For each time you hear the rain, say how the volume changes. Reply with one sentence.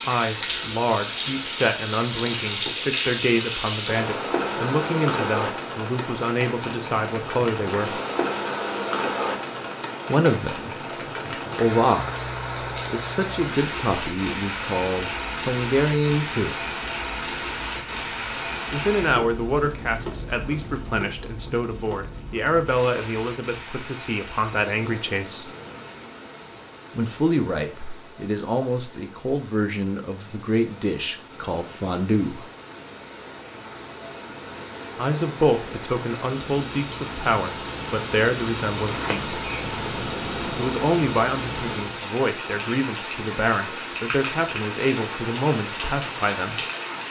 You can hear the rain from 0.0 to 47.0 s, getting quieter then louder.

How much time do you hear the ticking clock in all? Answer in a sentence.
You can't hear the ticking clock here.